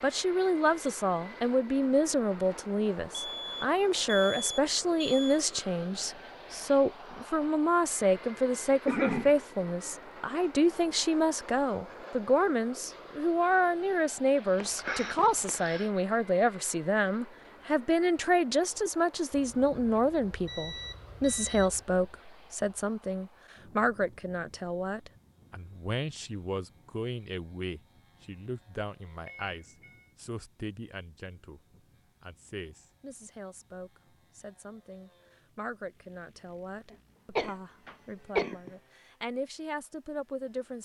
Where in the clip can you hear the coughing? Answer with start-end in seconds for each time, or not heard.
8.8-9.3, 14.6-15.9, 36.9-38.7.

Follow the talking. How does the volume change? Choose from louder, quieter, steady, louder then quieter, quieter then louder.
quieter.